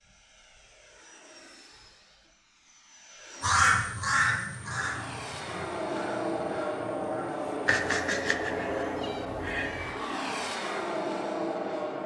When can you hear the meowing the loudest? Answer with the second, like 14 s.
8 s.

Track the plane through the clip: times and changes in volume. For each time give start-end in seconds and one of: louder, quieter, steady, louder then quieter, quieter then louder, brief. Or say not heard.
0.0-12.0 louder.